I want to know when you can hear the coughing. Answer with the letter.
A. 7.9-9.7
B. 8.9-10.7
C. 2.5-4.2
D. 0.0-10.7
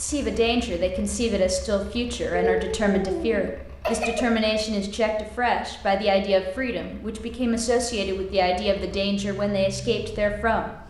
C.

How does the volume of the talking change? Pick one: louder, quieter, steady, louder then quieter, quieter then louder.
steady.